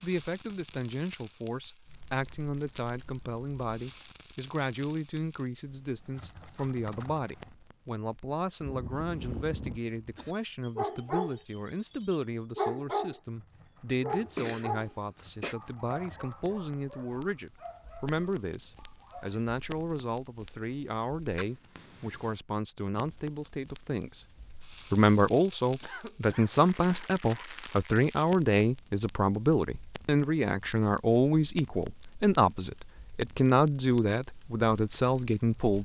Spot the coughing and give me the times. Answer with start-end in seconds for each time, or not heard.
8.6-10.3, 14.1-15.6, 25.8-27.1.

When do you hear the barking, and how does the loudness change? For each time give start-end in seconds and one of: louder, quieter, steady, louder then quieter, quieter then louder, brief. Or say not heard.
10.3-19.4 quieter.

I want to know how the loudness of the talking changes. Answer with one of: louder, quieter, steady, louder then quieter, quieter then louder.
louder.